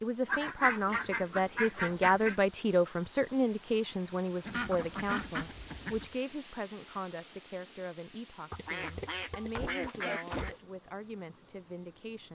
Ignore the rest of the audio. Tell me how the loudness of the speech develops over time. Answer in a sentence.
The loudness of the speech goes down.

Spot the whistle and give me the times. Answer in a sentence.
The whistle can't be heard in this clip.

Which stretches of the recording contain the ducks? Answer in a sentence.
You can hear the ducks from 0.2 to 2.4 s, from 4.5 to 6.1 s and from 8.5 to 10.6 s.